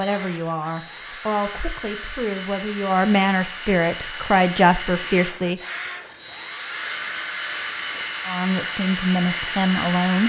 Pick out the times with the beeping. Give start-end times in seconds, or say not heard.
not heard.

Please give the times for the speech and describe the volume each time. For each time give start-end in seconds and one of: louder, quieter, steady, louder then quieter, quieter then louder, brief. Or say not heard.
0.0-5.6 louder
8.2-10.2 brief.